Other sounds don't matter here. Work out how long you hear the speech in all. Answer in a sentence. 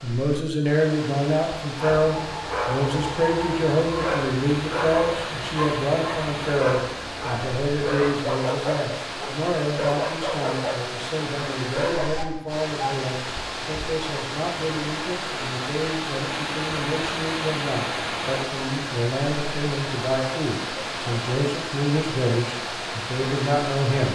You can hear the speech for 24 seconds altogether.